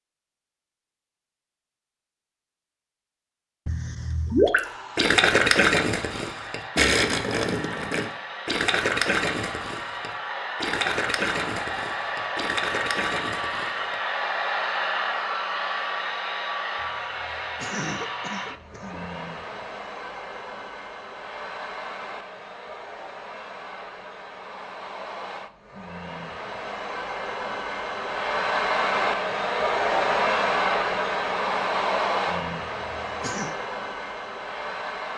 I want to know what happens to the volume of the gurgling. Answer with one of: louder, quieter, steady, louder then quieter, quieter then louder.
quieter.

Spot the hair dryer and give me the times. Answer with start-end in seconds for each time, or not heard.
4.6-35.1.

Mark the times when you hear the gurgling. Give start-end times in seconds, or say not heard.
4.3-14.0.